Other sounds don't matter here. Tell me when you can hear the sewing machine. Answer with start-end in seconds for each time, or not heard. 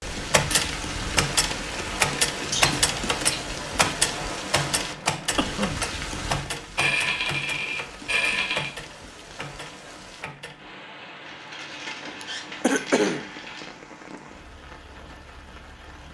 not heard.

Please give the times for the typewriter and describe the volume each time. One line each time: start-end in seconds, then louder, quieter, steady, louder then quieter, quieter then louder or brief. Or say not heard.
0.3-10.7 quieter.